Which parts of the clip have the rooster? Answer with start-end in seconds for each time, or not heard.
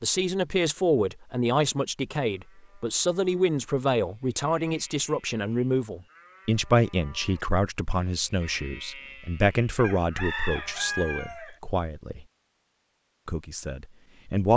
9.8-11.6.